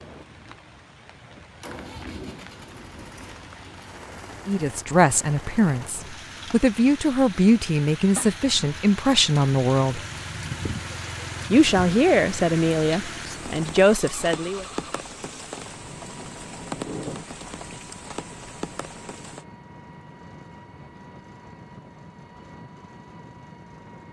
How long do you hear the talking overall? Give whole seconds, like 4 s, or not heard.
9 s.